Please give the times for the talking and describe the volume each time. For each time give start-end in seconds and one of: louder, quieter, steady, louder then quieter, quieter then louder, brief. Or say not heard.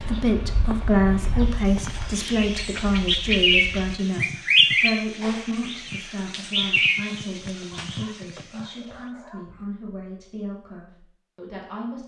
0.0-12.0 quieter.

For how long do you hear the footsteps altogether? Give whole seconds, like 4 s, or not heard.
not heard.